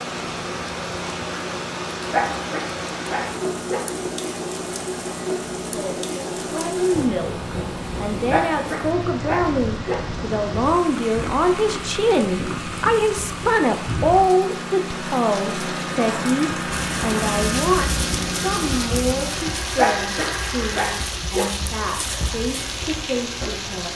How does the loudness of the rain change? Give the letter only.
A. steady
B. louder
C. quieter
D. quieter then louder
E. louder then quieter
A.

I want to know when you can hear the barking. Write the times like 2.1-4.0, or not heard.
2.1-3.9, 8.3-10.0, 19.8-21.5.